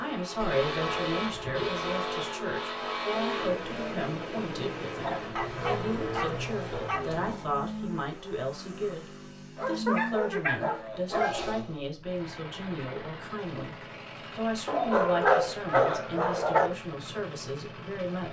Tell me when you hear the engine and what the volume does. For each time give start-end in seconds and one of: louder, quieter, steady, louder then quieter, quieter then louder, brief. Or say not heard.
0.0-18.2 quieter.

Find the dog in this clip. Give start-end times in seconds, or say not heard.
0.3-1.9, 4.9-7.5, 9.6-11.4, 14.7-16.7.